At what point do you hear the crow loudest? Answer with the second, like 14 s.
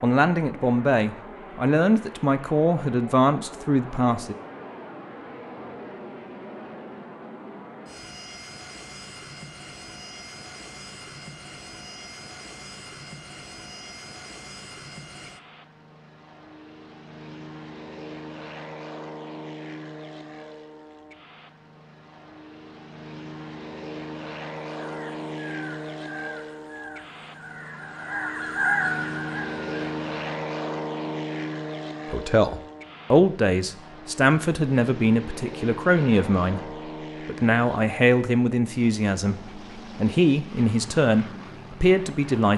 29 s.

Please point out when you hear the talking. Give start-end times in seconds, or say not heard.
0.0-4.3, 32.1-42.5.